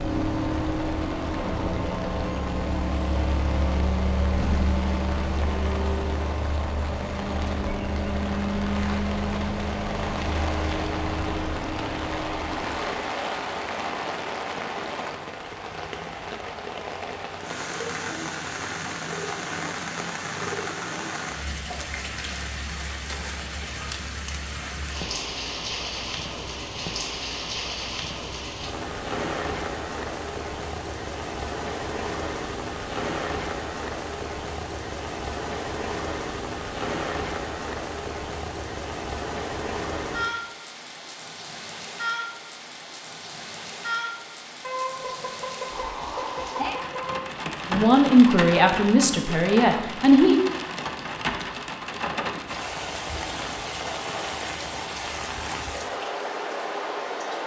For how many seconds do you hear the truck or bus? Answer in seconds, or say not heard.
13 s.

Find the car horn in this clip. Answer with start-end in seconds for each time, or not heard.
44.6-47.2.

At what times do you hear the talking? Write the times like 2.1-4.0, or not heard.
47.7-50.4.